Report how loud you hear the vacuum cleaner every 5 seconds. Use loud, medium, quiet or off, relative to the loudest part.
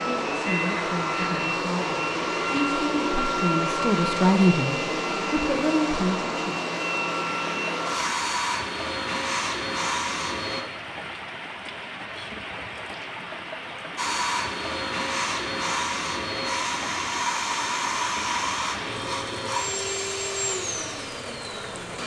loud, loud, loud, loud, medium.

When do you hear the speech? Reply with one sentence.
You can hear the speech from 0.1 to 6.5 s.